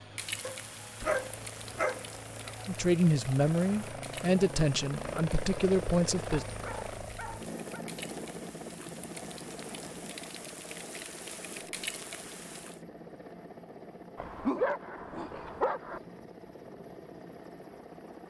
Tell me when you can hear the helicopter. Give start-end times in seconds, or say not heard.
0.0-18.2.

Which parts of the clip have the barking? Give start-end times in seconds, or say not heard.
0.4-2.5, 6.5-7.8, 14.2-16.0.